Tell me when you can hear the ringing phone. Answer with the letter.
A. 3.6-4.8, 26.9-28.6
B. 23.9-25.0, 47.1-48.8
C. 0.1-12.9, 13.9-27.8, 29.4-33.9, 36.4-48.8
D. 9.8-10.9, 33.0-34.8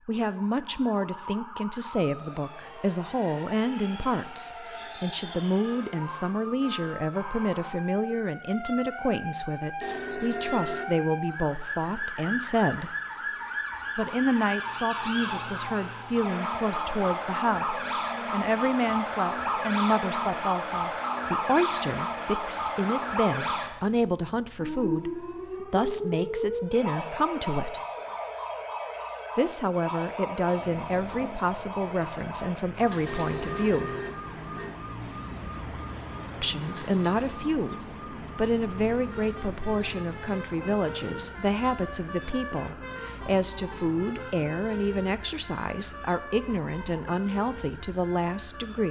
D.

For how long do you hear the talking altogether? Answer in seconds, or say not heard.
44 s.